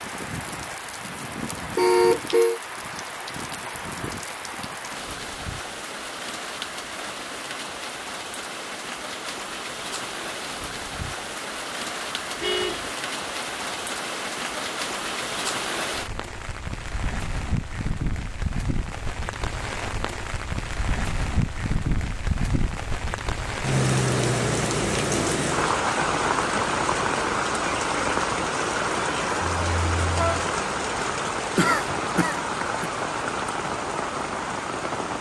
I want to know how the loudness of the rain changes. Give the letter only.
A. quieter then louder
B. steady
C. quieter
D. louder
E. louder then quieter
D.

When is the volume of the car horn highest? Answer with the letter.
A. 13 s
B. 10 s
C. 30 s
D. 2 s
D.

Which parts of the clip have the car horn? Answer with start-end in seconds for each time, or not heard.
1.8-2.6, 12.4-12.9, 29.4-30.6.